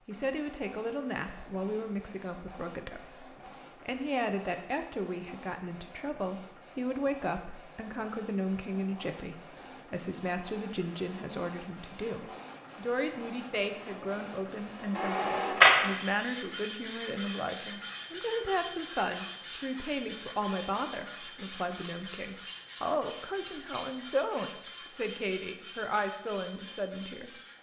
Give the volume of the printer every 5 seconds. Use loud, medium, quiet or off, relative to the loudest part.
quiet, quiet, quiet, loud, quiet, quiet.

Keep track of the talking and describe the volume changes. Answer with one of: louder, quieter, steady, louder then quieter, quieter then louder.
steady.